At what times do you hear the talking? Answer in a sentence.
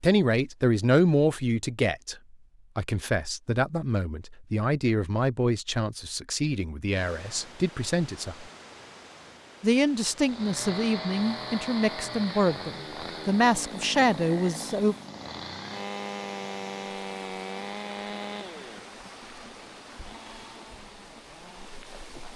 You can hear the talking from 0.0 to 2.1 s, from 2.8 to 8.4 s and from 9.6 to 14.9 s.